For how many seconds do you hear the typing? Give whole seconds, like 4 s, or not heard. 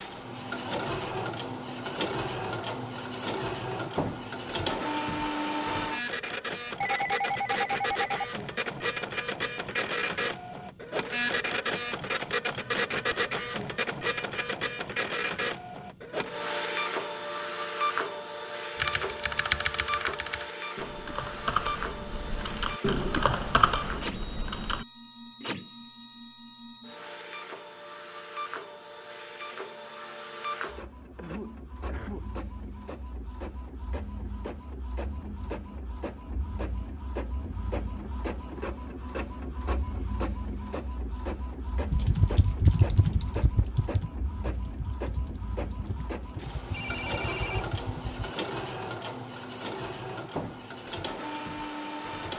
12 s.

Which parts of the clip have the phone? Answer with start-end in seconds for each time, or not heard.
6.8-8.3, 46.7-47.6.